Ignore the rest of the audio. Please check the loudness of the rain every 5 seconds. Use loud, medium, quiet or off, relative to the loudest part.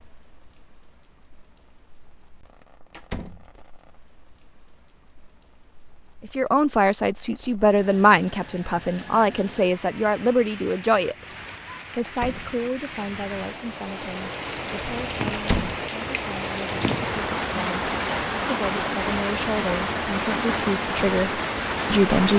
quiet, quiet, medium, loud, loud.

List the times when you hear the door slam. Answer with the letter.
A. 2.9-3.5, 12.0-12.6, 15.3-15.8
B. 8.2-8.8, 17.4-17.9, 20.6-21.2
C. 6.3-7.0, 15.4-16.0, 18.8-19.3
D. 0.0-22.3
A.